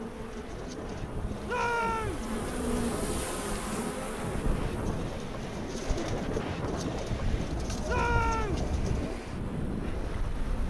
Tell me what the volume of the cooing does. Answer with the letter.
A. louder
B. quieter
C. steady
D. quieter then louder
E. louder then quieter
A.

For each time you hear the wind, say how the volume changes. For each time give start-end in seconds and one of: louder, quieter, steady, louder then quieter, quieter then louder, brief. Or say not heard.
0.0-10.6 louder.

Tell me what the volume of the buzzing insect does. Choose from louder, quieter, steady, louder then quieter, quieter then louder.
louder then quieter.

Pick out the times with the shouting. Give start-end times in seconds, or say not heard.
1.4-2.2, 7.8-8.7.